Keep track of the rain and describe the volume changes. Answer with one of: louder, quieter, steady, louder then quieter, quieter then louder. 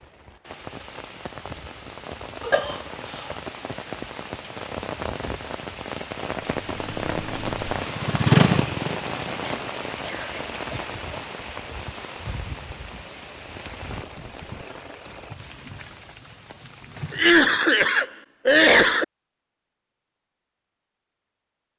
louder then quieter.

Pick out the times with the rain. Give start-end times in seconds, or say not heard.
0.0-17.4.